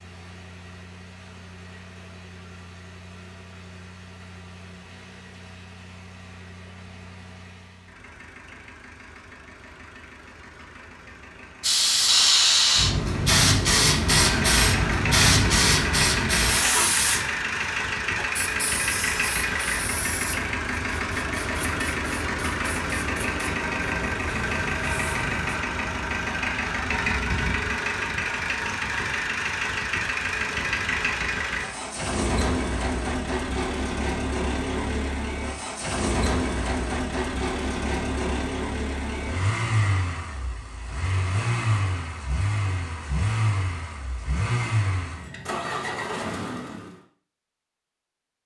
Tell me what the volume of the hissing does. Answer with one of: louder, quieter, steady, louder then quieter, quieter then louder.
quieter.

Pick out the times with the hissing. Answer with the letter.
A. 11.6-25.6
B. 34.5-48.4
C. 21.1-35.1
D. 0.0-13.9
A.